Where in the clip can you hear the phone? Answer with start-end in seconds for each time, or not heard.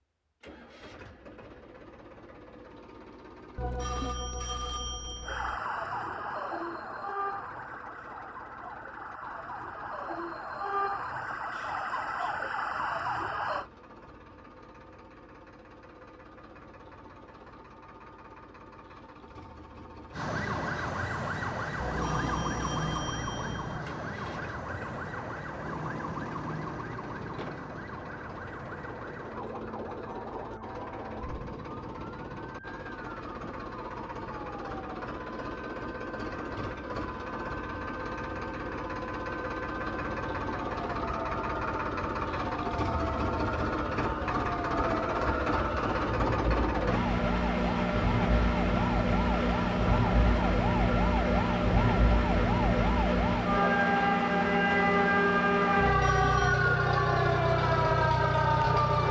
3.5-5.6, 21.8-23.8, 55.8-56.6.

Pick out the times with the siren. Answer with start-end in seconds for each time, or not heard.
5.2-13.7, 20.1-59.0.